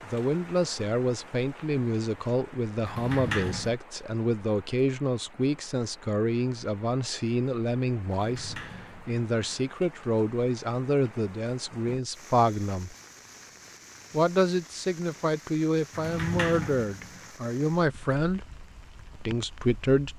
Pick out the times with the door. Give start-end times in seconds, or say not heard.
2.9-3.8, 8.2-9.6, 15.9-17.3.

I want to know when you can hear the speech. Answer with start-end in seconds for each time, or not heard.
0.1-12.9, 14.1-18.4, 19.1-20.1.